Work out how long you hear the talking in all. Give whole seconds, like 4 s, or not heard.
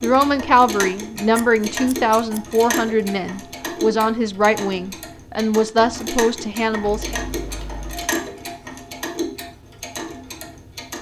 7 s.